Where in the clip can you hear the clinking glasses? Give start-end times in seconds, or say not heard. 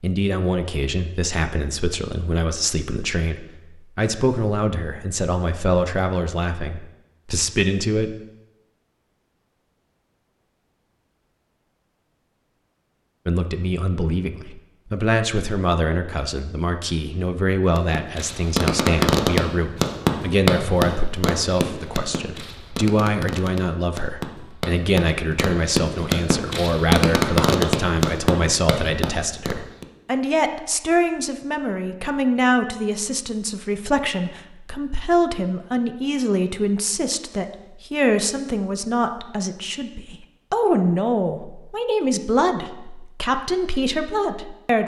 not heard.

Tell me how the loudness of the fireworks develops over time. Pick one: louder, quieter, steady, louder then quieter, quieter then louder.
quieter then louder.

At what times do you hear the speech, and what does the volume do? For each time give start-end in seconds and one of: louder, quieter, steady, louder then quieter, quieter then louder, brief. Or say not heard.
0.0-8.2 steady
13.2-44.8 steady.